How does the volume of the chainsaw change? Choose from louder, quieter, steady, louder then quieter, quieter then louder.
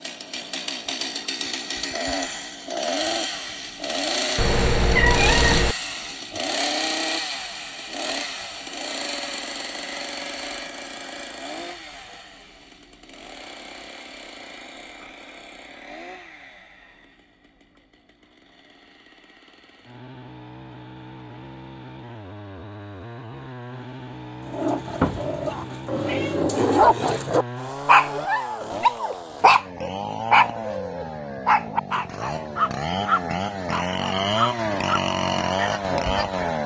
quieter then louder.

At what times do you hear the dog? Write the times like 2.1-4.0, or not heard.
24.4-36.5.